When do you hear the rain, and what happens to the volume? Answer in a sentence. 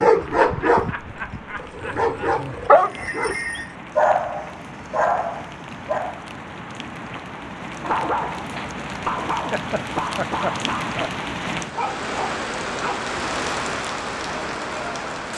The rain can be heard from 0.0 to 15.3 s, getting louder.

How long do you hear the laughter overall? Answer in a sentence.
The laughter can be heard for 4 seconds in total.